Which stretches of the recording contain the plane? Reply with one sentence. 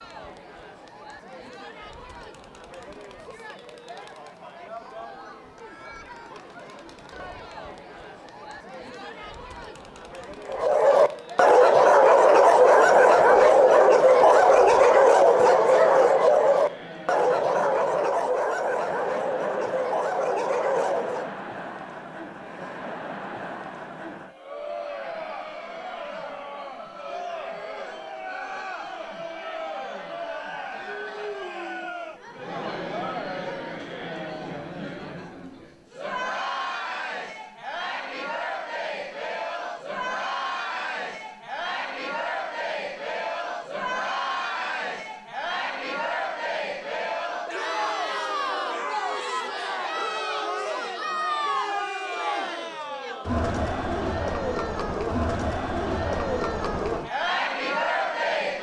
You can't hear the plane here.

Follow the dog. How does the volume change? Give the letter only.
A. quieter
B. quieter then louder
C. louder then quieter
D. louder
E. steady
A.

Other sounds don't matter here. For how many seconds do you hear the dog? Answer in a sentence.
The dog can be heard for 11 seconds in total.